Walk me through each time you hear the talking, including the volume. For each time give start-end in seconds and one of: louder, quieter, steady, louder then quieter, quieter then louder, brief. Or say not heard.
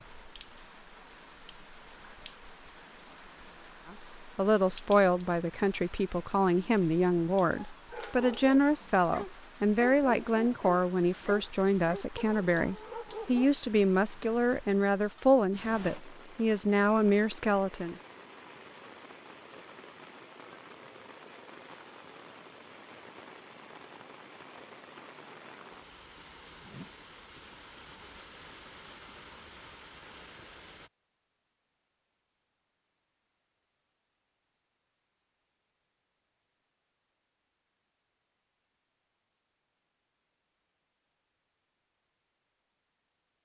3.9-17.9 steady.